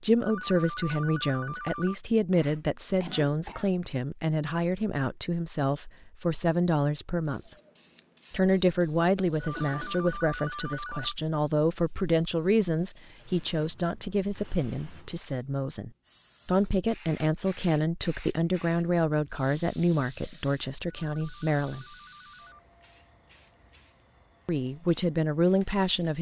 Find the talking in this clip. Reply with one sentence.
You can hear the talking from 0.0 to 7.4 s, from 8.3 to 21.9 s and from 24.4 to 26.1 s.